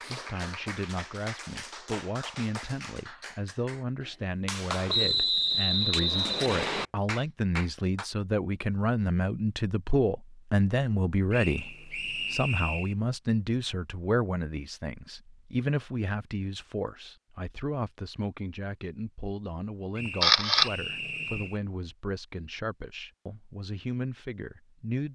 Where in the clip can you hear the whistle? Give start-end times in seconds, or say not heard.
4.8-6.8, 11.3-12.9, 19.9-21.6.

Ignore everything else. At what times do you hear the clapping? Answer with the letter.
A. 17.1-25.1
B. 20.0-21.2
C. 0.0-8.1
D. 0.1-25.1
C.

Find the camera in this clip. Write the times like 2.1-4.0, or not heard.
20.0-21.2.